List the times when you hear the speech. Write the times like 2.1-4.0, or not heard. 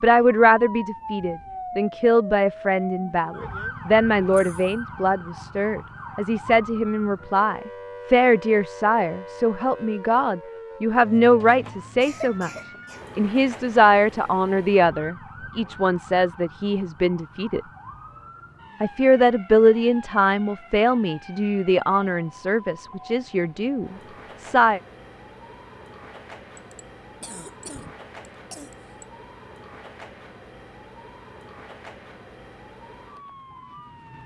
0.0-12.5, 13.2-17.6, 18.8-24.8.